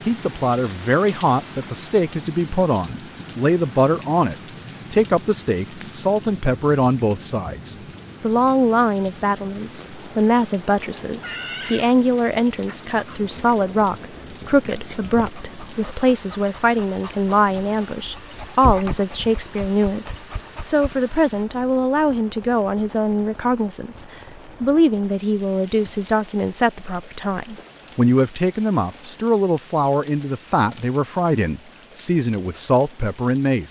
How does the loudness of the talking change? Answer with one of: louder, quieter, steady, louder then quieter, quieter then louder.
steady.